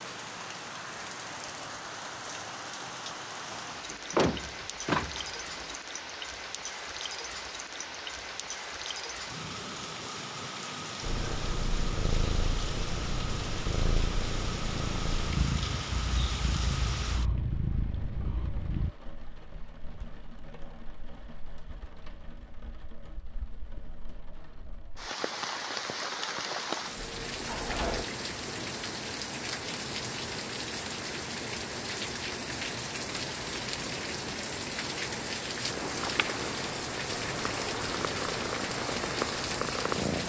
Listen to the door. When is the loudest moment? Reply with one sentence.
The volume of the door peaks at 4 seconds.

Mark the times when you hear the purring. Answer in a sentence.
The purring can be heard from 11.0 to 18.9 s and from 35.6 to 40.2 s.